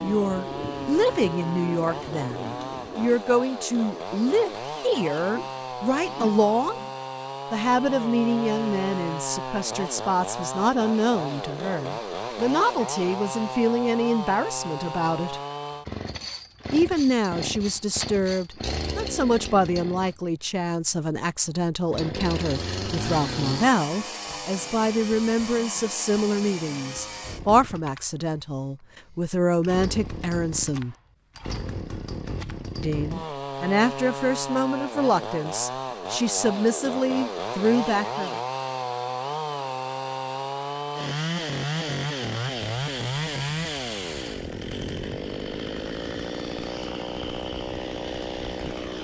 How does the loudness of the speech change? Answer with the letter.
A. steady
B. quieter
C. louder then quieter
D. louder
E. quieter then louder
A.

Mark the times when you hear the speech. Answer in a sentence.
The speech can be heard from 0.0 to 6.8 s, from 7.5 to 15.4 s, from 16.7 to 30.9 s and from 32.8 to 38.4 s.